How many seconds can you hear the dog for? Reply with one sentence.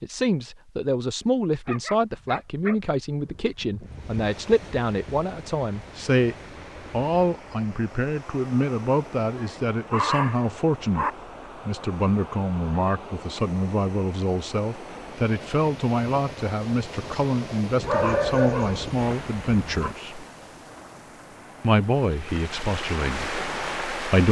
You can hear the dog for 6 seconds altogether.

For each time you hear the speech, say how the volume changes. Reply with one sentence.
You can hear the speech from 0.0 to 20.2 s, at a steady volume; and briefly from 21.6 to 24.2 s.